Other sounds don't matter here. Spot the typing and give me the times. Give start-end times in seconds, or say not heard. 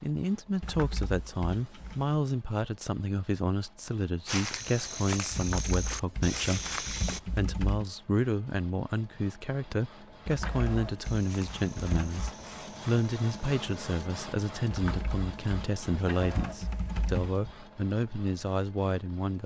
0.6-2.2, 5.3-7.8, 10.2-12.3, 14.7-17.6.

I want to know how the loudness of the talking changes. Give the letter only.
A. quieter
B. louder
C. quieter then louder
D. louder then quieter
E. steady
E.